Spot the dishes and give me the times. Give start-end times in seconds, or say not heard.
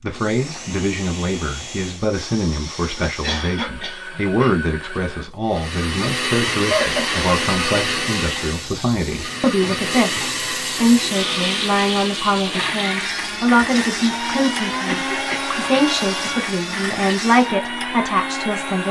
not heard.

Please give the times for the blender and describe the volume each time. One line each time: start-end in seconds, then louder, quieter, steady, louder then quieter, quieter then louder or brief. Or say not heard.
0.0-18.8 louder.